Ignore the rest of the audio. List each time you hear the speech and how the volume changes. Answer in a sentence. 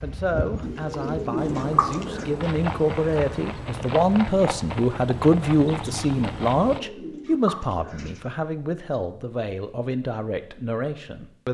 The speech can be heard from 0.0 to 11.4 s, getting louder then quieter.